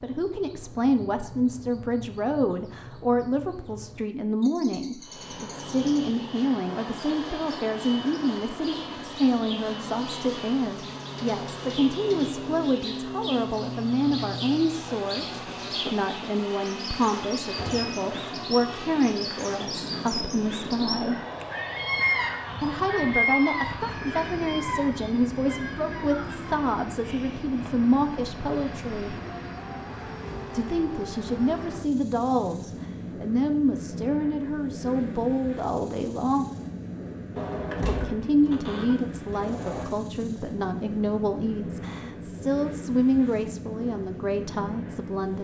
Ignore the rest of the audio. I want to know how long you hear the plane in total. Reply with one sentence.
You can hear the plane for 40 seconds altogether.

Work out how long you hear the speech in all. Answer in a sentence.
You can hear the speech for 41 seconds altogether.